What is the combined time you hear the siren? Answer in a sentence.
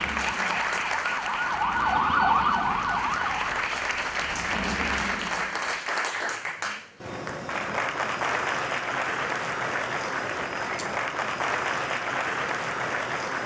The siren can be heard for 4 seconds in total.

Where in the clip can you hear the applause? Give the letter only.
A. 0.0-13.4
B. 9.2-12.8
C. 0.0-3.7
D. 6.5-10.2
A.